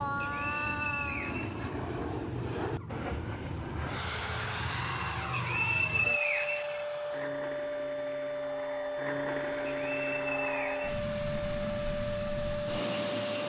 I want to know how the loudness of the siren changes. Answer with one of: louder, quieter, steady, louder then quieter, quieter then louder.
louder.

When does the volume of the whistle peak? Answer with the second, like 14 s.
6 s.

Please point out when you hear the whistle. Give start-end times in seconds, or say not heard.
0.2-2.1, 5.3-7.3, 9.7-11.1.